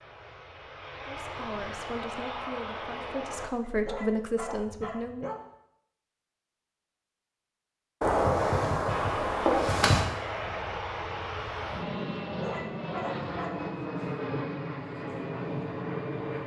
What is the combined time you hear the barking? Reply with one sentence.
The barking can be heard for 3 seconds in total.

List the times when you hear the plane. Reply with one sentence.
You can hear the plane from 0.0 to 3.5 s and from 8.8 to 16.4 s.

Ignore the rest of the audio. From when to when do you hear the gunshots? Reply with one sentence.
The gunshots can be heard from 8.0 to 10.0 s.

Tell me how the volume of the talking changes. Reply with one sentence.
The volume of the talking goes up.